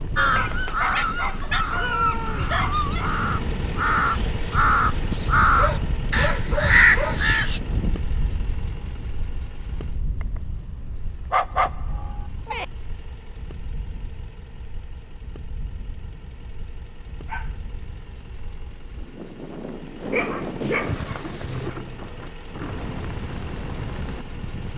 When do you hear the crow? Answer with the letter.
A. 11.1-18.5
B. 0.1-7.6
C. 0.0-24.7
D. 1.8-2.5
B.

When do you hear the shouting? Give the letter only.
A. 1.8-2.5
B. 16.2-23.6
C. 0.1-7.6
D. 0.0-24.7
A.